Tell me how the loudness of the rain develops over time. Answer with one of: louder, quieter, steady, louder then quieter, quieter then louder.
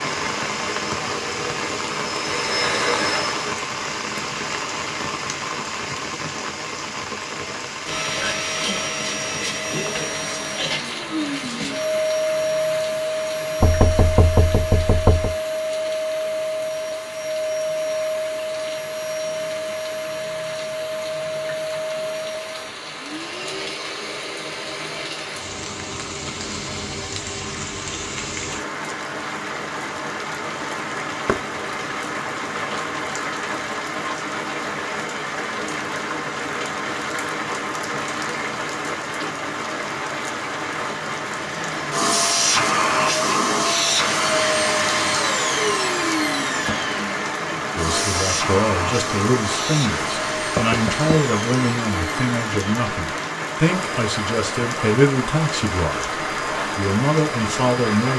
quieter then louder.